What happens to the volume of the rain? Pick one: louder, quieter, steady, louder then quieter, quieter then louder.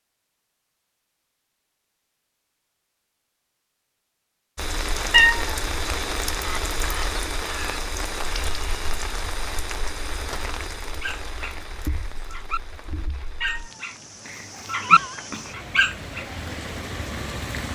quieter then louder.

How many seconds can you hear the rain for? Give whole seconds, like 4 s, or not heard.
13 s.